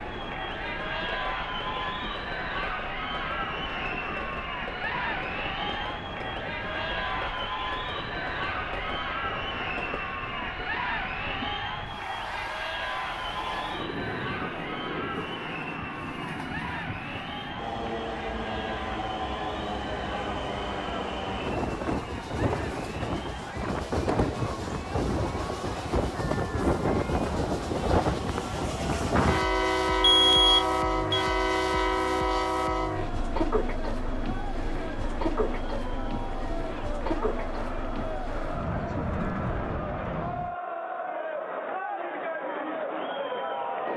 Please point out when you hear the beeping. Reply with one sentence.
You can hear the beeping from 30.0 to 31.2 s.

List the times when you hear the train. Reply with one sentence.
You can hear the train from 0.0 to 40.5 s.